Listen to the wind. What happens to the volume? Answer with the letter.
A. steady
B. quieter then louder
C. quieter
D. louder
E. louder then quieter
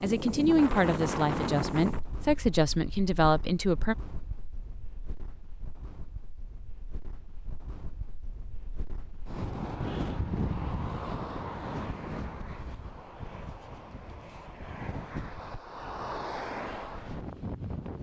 B.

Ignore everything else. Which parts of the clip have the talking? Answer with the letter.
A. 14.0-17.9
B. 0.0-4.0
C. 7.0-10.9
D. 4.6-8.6
B.